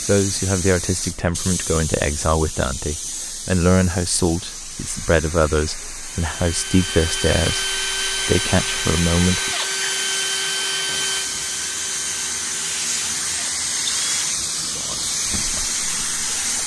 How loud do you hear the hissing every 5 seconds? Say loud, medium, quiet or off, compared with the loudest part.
medium, medium, loud, loud.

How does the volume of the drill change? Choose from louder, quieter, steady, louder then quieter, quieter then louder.
quieter.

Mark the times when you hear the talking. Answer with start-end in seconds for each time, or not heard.
0.0-9.6, 14.6-15.2.